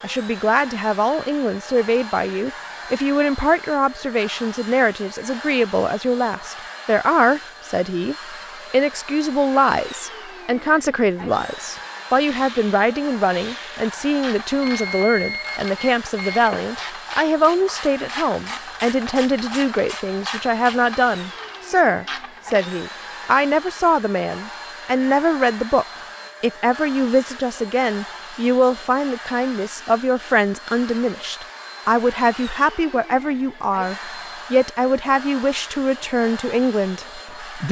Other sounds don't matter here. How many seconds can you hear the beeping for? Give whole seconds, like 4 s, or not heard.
2 s.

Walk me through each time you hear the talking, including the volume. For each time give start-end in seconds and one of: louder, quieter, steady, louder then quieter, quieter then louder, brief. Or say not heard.
0.0-37.6 steady.